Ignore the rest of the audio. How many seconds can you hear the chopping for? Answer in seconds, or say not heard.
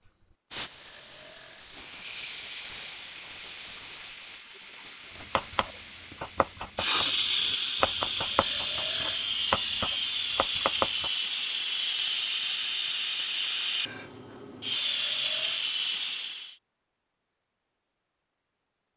6 s.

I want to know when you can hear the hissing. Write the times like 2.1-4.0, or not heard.
0.0-16.6.